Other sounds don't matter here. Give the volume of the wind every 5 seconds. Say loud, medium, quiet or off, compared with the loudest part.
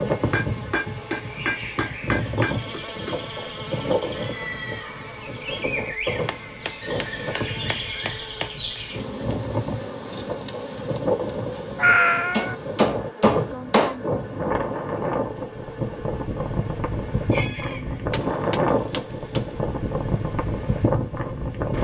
loud, medium, loud, loud, loud.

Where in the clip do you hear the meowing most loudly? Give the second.
12 s.